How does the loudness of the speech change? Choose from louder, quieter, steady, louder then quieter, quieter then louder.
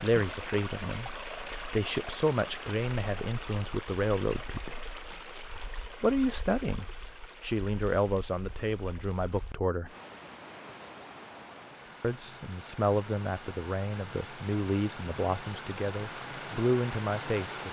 steady.